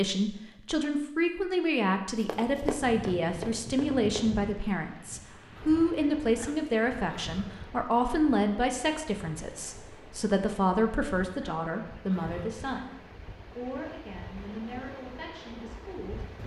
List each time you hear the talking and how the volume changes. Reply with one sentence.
The talking can be heard from 0.0 to 16.4 s, getting quieter.